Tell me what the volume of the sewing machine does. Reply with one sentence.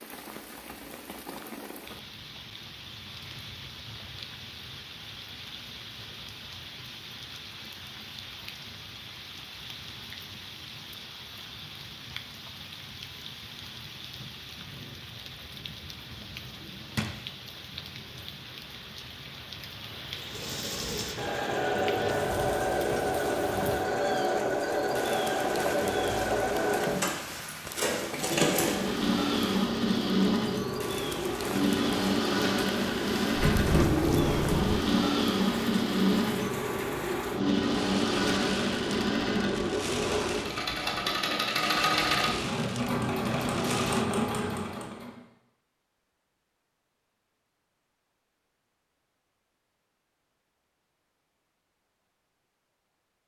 The loudness of the sewing machine stays about the same.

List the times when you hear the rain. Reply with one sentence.
The rain can be heard from 0.0 to 44.0 s.